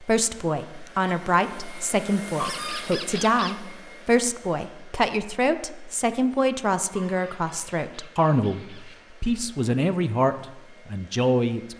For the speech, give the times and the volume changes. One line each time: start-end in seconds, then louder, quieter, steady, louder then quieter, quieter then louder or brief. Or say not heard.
0.0-11.7 steady.